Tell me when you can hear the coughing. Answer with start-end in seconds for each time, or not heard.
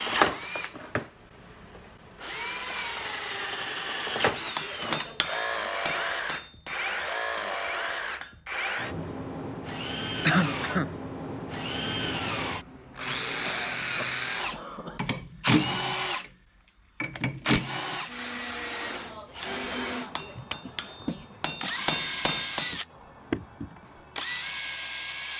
10.2-10.9, 13.4-15.0.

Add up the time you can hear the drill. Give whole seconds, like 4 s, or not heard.
25 s.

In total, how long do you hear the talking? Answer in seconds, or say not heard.
not heard.